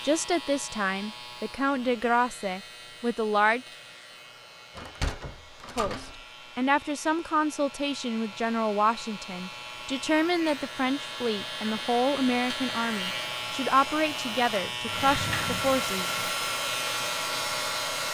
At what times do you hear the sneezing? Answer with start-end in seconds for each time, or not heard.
not heard.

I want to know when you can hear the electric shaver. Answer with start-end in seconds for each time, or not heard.
0.0-18.0.